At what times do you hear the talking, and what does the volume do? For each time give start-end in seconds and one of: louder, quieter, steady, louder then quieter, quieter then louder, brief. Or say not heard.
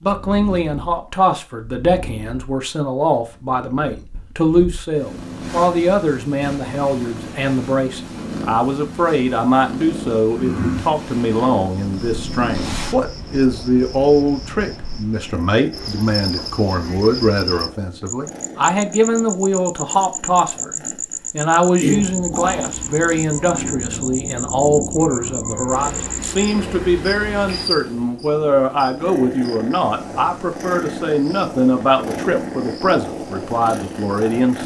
0.0-34.6 steady.